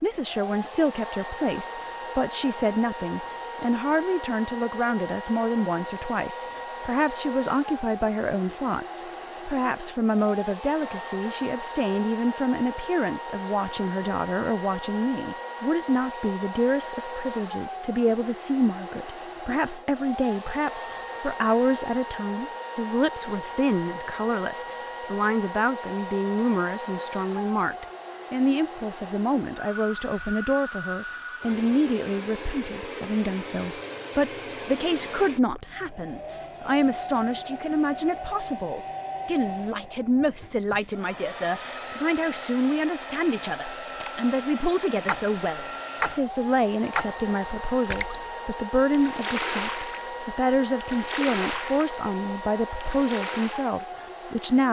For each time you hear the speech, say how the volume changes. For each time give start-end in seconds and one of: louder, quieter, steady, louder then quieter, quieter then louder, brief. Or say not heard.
0.0-54.6 steady.